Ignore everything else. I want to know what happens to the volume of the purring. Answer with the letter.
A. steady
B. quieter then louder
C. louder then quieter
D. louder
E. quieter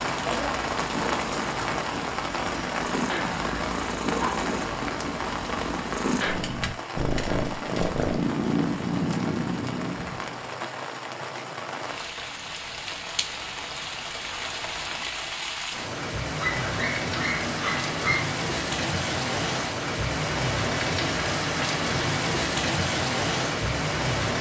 D.